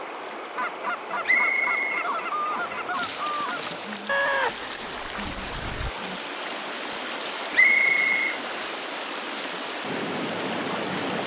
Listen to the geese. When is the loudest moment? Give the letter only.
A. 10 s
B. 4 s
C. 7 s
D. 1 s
B.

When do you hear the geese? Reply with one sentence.
You can hear the geese from 0.6 to 5.9 s.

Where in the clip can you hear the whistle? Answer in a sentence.
The whistle can be heard from 1.2 to 2.9 s and from 7.5 to 8.3 s.